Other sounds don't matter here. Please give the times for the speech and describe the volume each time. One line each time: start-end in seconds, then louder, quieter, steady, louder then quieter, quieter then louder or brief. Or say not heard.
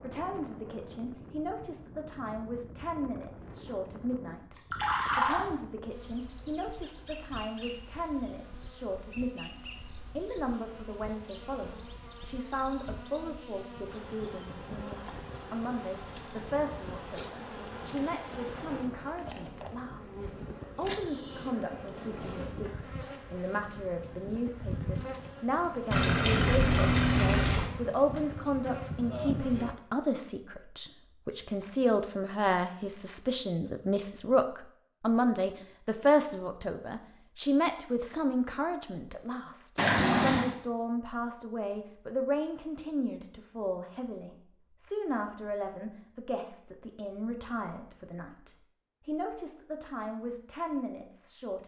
0.0-51.6 louder then quieter.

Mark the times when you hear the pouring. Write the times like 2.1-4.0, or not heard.
4.5-5.5, 25.9-27.7, 39.8-40.5.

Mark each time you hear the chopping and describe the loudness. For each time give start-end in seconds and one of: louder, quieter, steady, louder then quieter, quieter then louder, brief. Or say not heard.
not heard.